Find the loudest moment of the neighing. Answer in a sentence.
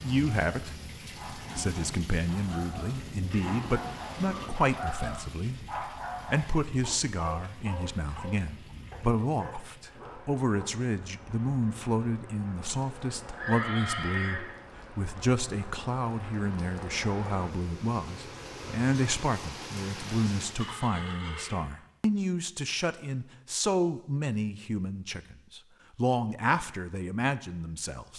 The volume of the neighing peaks at 14 seconds.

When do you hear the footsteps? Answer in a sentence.
You can't hear the footsteps here.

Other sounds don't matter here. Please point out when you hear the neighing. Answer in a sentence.
The neighing can be heard from 3.3 to 4.5 s, from 13.3 to 14.4 s and from 20.6 to 21.6 s.